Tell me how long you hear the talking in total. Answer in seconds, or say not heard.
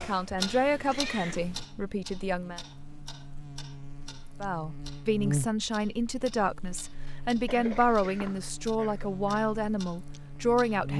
9 s.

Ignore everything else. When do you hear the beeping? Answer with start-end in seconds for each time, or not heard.
not heard.